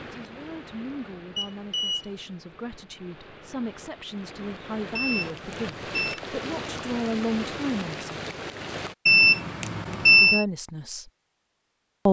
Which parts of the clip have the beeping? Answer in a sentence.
The beeping can be heard from 1.4 to 2.1 s, from 5.0 to 6.2 s and from 9.1 to 10.4 s.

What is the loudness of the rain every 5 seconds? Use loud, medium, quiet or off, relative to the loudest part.
medium, loud, off.